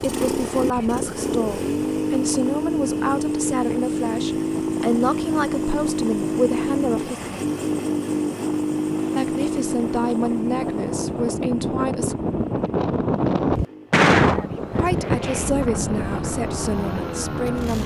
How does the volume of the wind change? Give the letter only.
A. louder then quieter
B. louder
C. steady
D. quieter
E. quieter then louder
B.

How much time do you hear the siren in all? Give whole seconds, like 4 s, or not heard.
not heard.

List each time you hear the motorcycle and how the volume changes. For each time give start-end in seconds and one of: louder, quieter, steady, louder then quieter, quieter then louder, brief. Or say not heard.
0.0-17.8 quieter.